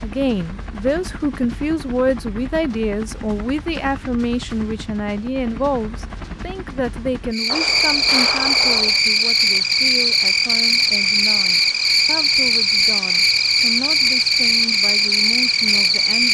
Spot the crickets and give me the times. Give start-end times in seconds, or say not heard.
7.3-16.2.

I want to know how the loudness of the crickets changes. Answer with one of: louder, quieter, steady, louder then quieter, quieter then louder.
steady.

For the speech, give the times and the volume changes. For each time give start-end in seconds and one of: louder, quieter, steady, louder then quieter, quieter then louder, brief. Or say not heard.
0.0-16.2 quieter.